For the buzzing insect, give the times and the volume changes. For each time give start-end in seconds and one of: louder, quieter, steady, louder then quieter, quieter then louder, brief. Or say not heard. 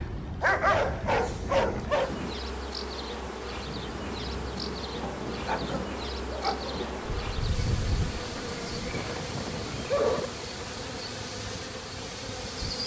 0.0-12.8 steady.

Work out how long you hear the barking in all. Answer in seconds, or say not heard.
4 s.